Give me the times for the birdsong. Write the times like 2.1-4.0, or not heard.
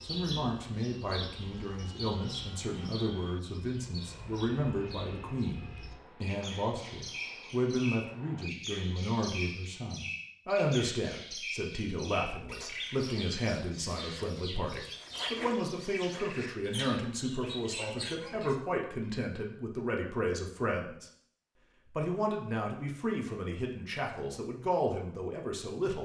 0.0-18.6.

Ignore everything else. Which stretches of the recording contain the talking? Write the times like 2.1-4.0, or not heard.
0.0-21.1, 21.9-25.9.